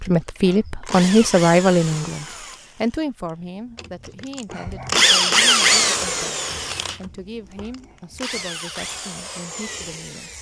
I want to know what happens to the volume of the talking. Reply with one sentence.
The volume of the talking goes down.